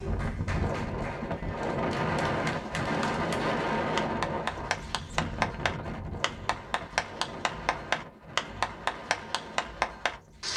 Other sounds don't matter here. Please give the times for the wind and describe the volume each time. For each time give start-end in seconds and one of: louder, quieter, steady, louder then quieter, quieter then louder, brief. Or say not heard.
0.0-10.5 quieter.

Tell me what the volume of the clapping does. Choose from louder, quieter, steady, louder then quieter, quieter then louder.
louder.